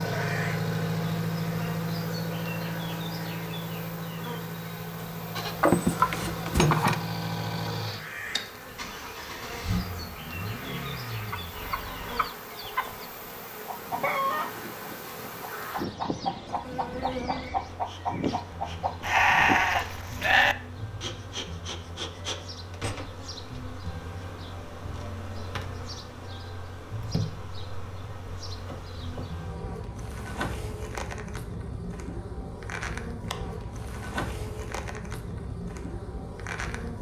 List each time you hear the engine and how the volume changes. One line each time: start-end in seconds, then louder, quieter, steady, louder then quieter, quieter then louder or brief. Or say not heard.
0.0-12.3 quieter.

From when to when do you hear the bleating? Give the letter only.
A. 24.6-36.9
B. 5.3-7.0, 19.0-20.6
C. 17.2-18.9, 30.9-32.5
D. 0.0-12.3
B.